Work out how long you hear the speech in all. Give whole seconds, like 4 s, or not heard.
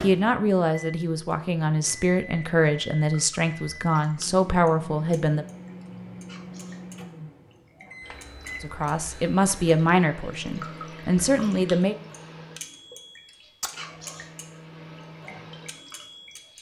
9 s.